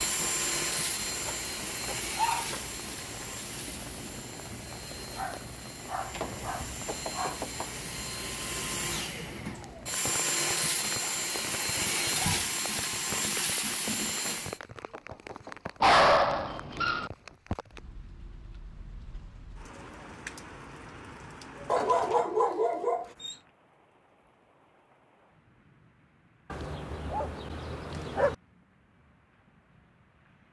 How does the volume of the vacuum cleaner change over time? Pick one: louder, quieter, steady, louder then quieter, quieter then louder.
quieter then louder.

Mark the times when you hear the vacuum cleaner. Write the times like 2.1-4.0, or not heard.
0.0-14.6.